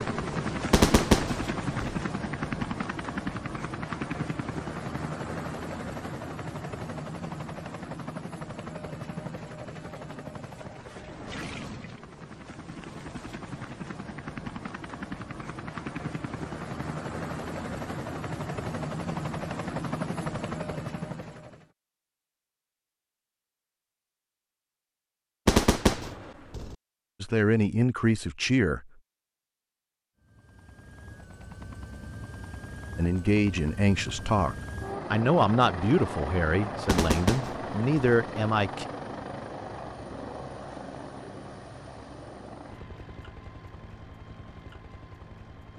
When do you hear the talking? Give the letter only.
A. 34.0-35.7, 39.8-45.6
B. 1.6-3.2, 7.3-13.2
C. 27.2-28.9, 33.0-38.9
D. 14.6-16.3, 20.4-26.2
C.